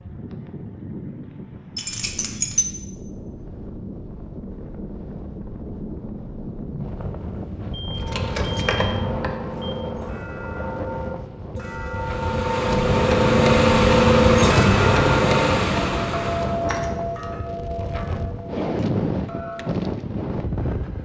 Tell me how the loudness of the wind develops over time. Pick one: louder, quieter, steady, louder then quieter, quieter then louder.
louder.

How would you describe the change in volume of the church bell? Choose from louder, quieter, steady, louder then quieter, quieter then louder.
louder then quieter.